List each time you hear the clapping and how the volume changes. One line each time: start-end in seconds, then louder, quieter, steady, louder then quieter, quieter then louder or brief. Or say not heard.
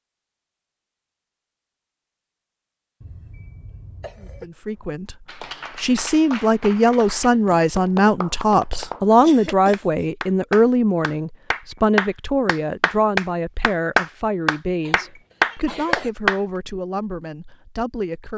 4.8-16.4 louder.